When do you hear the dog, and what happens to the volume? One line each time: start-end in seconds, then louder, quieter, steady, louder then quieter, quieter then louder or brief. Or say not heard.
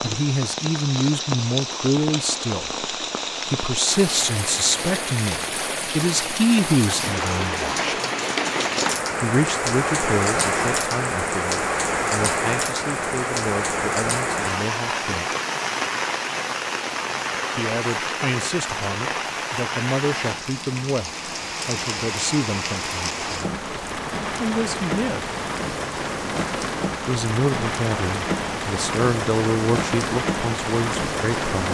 not heard.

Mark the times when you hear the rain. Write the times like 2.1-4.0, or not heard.
0.0-31.6.